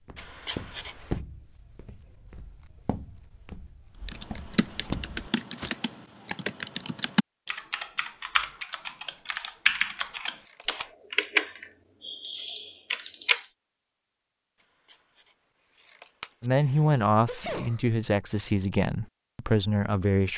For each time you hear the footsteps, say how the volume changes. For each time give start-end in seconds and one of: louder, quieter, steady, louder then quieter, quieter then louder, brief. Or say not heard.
0.1-5.8 quieter then louder.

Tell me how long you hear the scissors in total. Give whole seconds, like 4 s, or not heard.
5 s.